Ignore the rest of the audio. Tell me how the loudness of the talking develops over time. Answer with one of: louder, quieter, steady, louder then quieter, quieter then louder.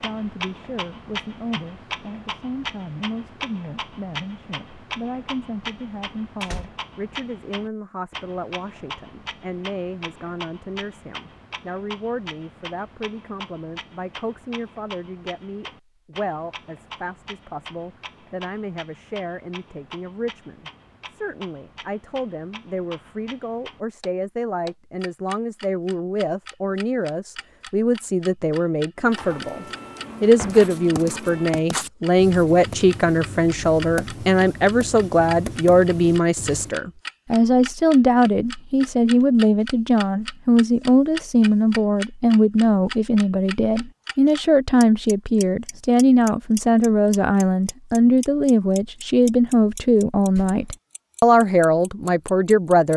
louder.